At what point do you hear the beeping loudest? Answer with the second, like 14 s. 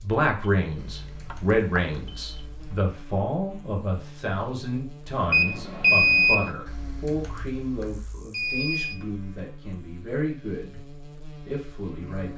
6 s.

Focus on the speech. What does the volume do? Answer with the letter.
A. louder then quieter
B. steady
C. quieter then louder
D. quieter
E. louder
D.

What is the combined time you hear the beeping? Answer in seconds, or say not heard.
4 s.